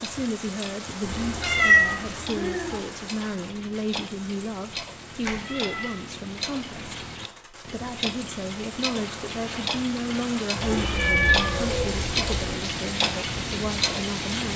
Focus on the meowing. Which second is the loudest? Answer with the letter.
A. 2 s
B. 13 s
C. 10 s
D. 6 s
A.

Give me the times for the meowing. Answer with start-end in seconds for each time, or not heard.
1.0-2.8, 5.2-6.0, 10.6-12.6.